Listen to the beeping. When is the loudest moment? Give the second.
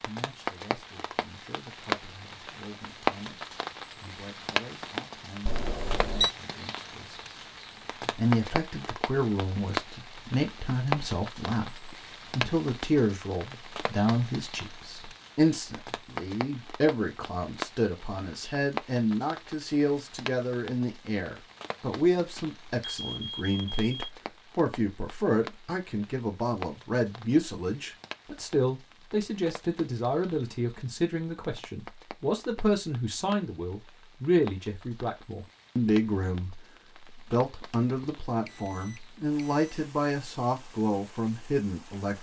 6 s.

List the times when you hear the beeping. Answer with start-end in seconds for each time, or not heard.
5.5-6.3, 22.4-24.1, 37.7-39.7.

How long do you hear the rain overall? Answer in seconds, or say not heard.
42 s.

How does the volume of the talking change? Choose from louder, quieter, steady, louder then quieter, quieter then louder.
louder.